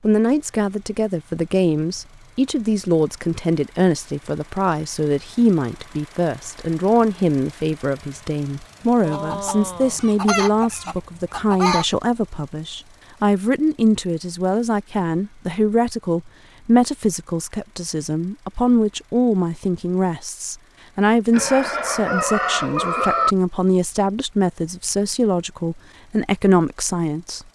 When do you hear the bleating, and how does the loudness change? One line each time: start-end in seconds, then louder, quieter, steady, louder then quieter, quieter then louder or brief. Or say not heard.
not heard.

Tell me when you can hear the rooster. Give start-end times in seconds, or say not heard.
9.1-11.8, 21.3-23.4.